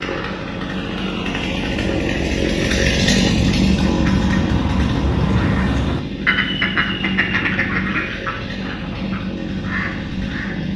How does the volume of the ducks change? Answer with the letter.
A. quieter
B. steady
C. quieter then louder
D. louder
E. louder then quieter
E.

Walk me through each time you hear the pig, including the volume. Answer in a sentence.
The pig can't be heard in this clip.